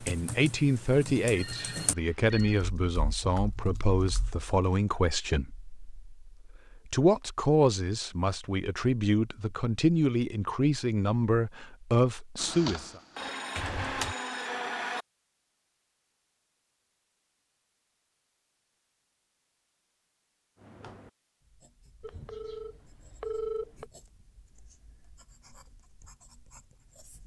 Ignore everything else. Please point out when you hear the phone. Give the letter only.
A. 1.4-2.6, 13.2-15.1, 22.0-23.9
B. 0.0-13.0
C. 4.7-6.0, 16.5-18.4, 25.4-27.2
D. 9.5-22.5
A.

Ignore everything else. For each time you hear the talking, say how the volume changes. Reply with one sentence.
You can hear the talking from 0.0 to 13.0 s, at a steady volume.